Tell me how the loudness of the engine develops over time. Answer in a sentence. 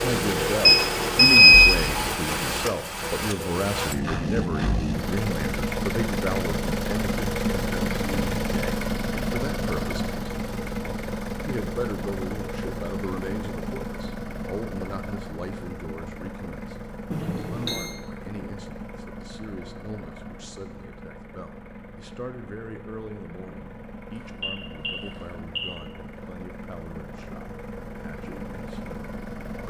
The loudness of the engine goes down.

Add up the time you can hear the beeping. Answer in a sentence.
You can hear the beeping for 4 seconds altogether.